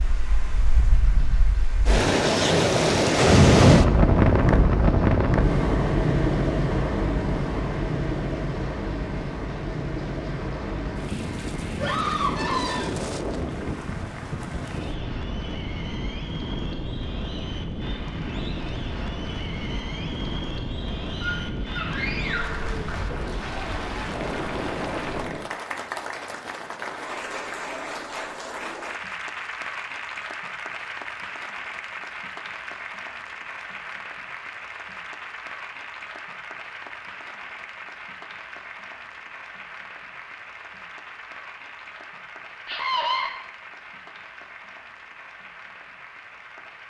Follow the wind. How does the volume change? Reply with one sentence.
The loudness of the wind goes down.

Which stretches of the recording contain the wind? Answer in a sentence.
The wind can be heard from 0.0 to 25.5 s.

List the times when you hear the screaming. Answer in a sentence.
You can hear the screaming from 11.8 to 12.9 s, from 21.2 to 22.6 s and from 42.6 to 43.3 s.